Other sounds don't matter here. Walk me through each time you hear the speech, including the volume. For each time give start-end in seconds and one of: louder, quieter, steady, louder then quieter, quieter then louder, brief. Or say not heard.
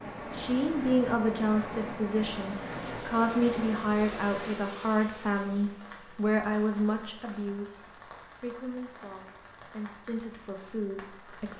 0.3-11.5 quieter.